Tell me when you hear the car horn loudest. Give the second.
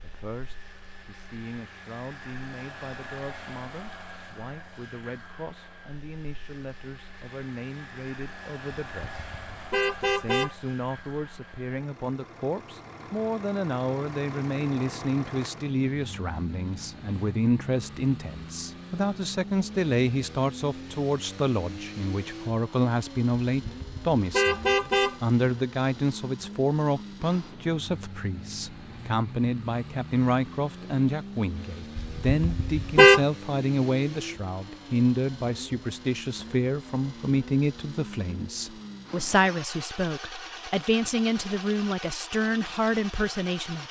33 s.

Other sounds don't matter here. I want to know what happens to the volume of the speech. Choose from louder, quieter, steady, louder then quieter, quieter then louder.
louder.